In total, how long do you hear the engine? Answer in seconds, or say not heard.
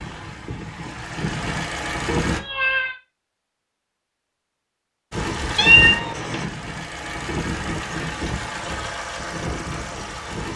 8 s.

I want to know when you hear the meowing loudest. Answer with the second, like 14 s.
6 s.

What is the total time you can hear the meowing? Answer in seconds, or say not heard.
2 s.